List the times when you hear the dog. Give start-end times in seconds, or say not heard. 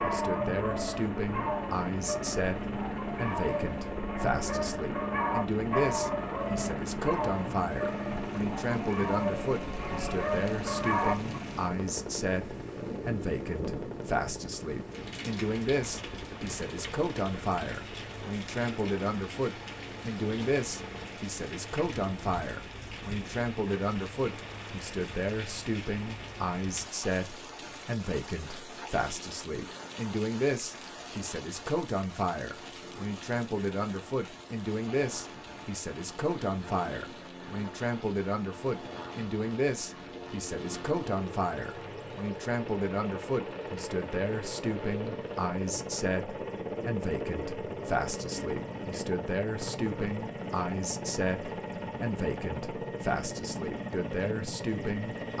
0.0-11.3.